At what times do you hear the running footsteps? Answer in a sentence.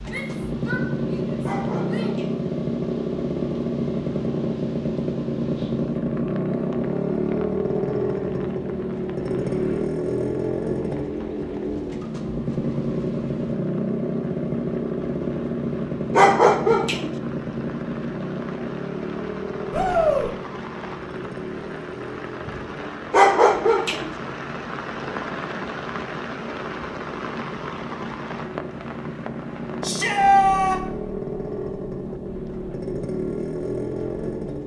The running footsteps can't be heard in this clip.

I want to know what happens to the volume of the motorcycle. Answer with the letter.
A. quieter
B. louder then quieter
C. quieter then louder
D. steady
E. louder
C.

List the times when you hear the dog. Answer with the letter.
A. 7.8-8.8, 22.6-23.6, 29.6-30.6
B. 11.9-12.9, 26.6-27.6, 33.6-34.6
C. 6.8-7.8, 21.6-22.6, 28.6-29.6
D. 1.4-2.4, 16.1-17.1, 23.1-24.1
D.